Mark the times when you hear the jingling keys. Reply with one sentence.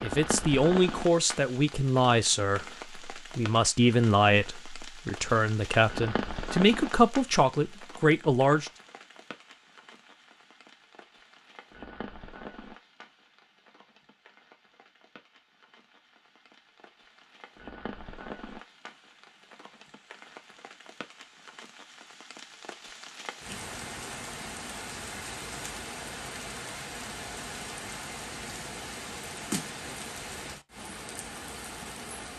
The jingling keys can't be heard in this clip.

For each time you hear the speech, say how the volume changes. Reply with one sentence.
You can hear the speech from 0.0 to 8.7 s, at a steady volume.